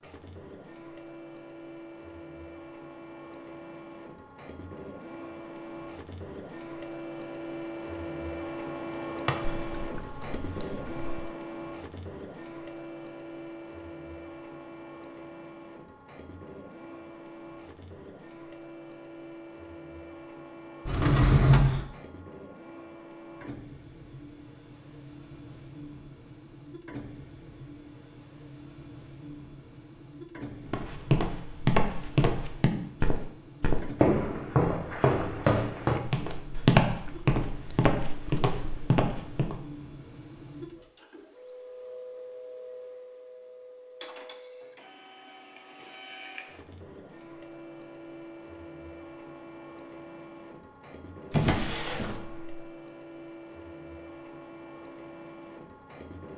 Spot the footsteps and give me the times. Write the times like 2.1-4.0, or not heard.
30.6-39.6.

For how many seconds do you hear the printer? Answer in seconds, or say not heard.
56 s.